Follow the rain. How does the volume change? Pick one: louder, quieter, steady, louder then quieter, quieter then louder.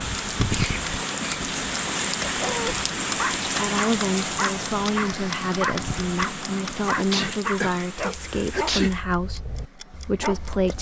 quieter.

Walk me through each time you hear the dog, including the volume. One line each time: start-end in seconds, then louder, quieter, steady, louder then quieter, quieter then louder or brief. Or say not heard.
2.2-10.7 quieter.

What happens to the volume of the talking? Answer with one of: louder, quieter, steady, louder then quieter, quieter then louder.
steady.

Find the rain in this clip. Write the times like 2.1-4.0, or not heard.
0.0-9.1.